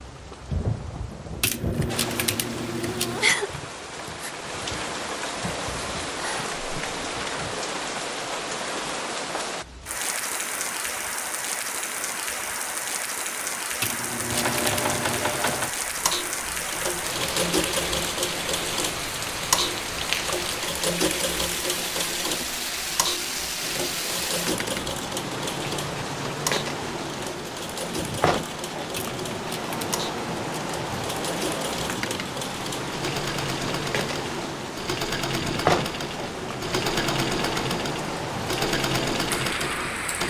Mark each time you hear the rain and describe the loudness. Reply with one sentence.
The rain can be heard from 0.0 to 40.2 s, at a steady volume.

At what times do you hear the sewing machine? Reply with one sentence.
You can hear the sewing machine from 14.2 to 40.2 s.